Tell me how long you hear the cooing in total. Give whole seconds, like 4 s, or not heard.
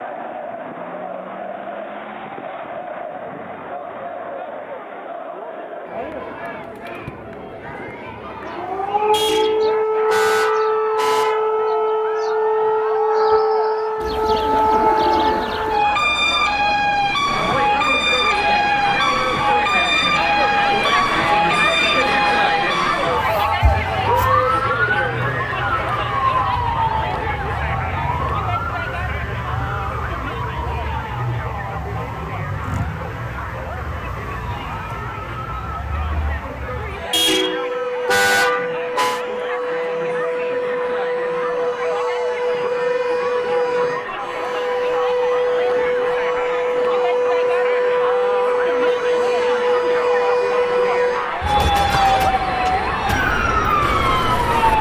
2 s.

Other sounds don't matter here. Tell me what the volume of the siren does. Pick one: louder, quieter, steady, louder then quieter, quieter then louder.
quieter then louder.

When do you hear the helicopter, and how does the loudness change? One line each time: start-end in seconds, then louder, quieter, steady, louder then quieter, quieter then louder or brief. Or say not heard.
not heard.